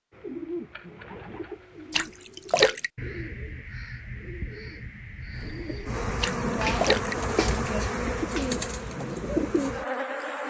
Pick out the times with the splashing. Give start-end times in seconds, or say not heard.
1.9-2.9, 6.2-7.2.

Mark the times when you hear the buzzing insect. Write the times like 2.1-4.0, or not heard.
5.3-10.4.